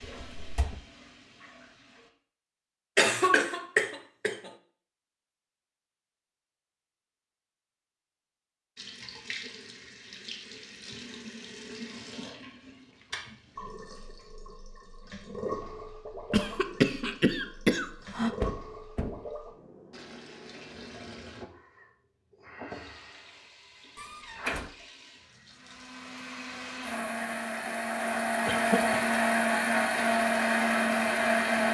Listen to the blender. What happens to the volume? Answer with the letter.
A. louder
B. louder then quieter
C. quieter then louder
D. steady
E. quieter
A.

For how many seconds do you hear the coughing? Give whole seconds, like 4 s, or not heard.
4 s.